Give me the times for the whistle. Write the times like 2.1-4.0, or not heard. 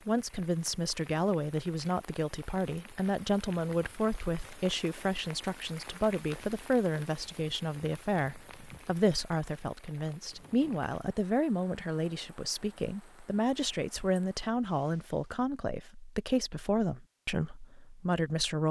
not heard.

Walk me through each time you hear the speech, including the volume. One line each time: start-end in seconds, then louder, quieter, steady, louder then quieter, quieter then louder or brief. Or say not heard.
0.1-18.6 steady.